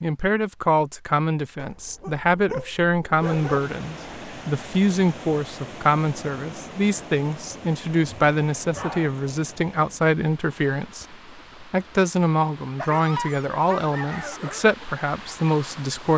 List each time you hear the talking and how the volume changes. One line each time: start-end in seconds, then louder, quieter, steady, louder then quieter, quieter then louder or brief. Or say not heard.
0.0-16.1 steady.